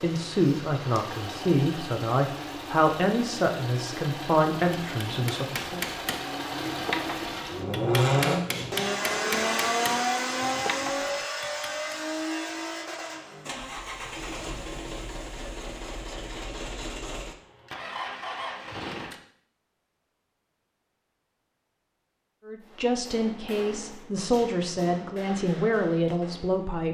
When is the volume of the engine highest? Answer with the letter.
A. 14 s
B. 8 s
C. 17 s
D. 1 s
B.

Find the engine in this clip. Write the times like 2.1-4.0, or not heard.
0.0-19.1.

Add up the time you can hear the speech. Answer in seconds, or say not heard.
10 s.